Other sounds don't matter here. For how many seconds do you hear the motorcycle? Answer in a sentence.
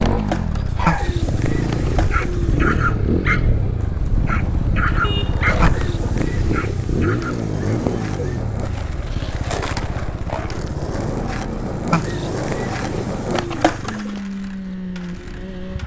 You can hear the motorcycle for 16 seconds altogether.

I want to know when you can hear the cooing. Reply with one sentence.
The cooing can be heard from 0.8 to 3.0 s, from 5.6 to 8.4 s and from 11.9 to 14.2 s.